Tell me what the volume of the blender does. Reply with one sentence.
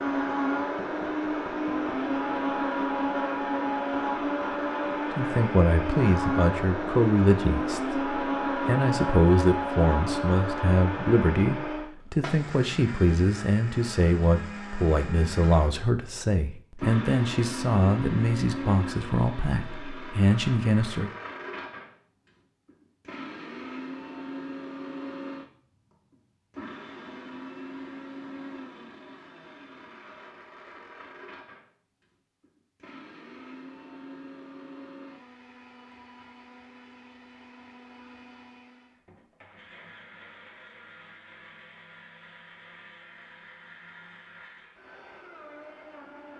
The loudness of the blender goes down.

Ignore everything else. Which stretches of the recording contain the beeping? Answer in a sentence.
The beeping can't be heard in this clip.